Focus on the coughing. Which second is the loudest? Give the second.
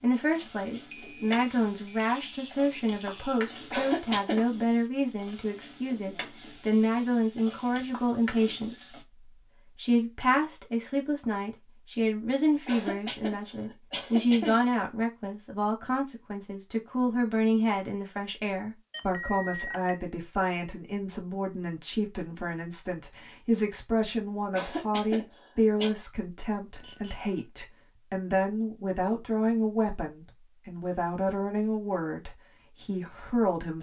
4 s.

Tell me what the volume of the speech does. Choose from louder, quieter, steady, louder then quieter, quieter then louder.
steady.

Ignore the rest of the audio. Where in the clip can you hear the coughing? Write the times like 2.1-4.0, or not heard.
3.7-4.4, 12.7-14.6, 24.5-25.9.